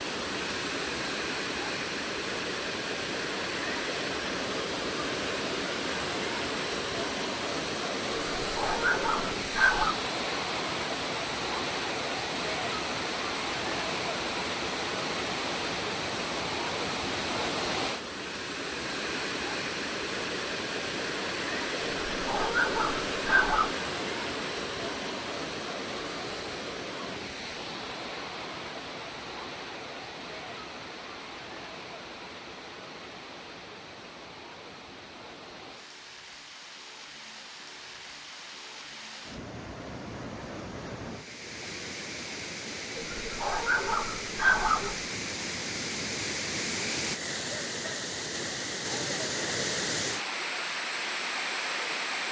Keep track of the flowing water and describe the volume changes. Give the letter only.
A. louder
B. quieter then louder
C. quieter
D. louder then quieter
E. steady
B.